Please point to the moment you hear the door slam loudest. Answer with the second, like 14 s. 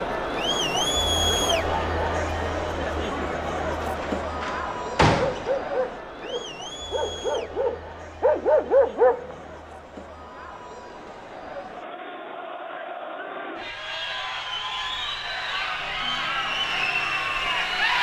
5 s.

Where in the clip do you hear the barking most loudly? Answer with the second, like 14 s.
9 s.